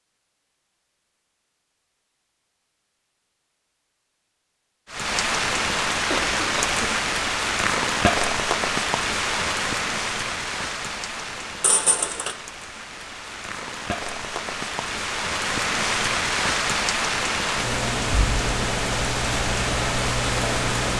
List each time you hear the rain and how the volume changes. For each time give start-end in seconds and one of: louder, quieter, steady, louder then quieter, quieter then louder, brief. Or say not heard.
4.8-20.9 quieter then louder.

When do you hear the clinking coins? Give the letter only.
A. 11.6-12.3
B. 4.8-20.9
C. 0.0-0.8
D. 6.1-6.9
A.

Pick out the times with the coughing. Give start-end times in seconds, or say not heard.
6.1-6.9.